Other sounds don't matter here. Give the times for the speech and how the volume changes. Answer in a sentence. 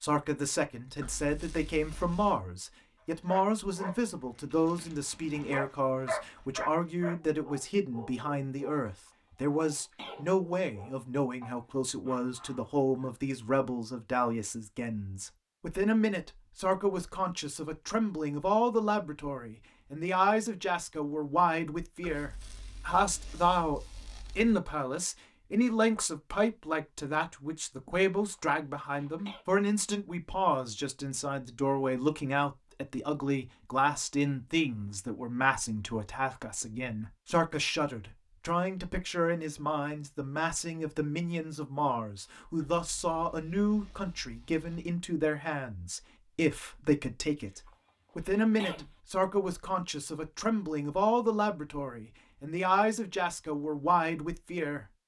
The speech can be heard from 0.0 to 54.9 s, at a steady volume.